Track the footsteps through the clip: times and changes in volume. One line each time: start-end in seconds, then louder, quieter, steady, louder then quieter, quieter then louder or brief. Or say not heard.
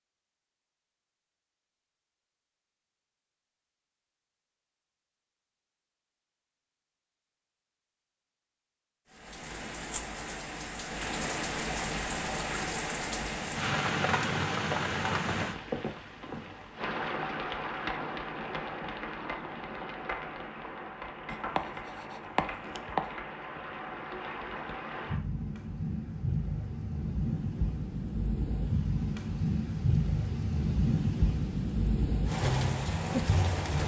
not heard.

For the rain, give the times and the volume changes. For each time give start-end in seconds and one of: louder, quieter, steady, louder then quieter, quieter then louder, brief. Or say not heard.
9.2-33.8 quieter then louder.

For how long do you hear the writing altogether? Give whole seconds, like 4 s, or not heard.
2 s.